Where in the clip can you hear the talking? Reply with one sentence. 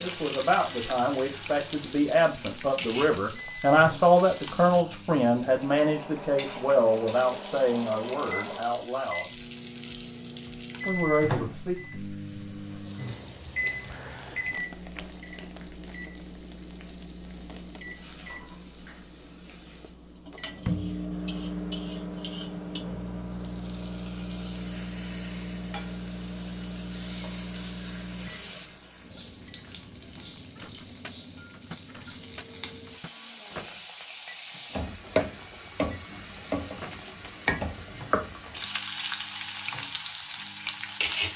The talking can be heard from 0.0 to 9.3 s and from 10.8 to 11.8 s.